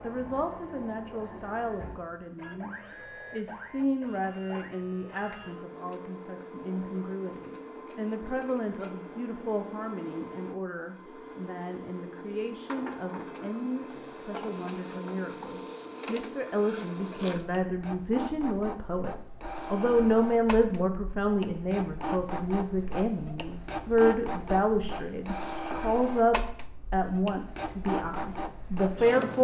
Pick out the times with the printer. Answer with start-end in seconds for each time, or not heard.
0.0-29.4.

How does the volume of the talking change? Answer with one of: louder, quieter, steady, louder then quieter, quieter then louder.
louder.